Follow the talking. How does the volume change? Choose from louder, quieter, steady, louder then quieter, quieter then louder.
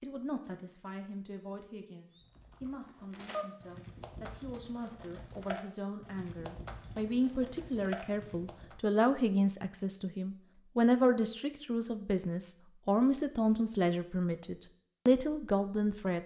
louder.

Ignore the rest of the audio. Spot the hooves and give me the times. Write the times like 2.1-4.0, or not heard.
2.1-8.8.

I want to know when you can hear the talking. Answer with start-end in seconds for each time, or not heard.
0.0-16.2.